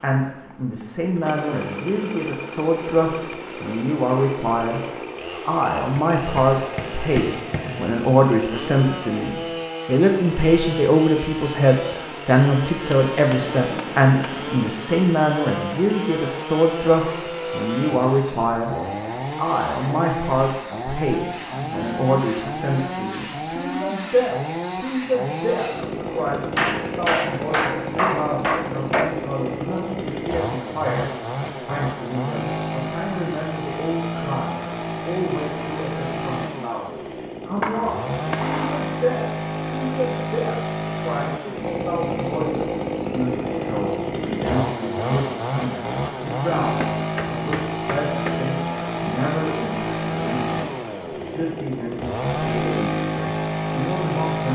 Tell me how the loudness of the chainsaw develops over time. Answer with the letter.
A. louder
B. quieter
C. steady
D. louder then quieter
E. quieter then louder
A.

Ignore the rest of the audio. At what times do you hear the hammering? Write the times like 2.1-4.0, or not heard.
6.0-7.8, 13.1-14.7, 26.6-29.1, 37.6-39.0, 46.8-48.4.